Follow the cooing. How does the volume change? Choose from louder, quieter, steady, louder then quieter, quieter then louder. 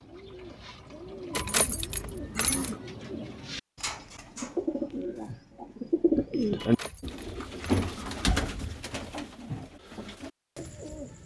louder then quieter.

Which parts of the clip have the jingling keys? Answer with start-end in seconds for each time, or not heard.
1.3-2.8, 6.5-8.7.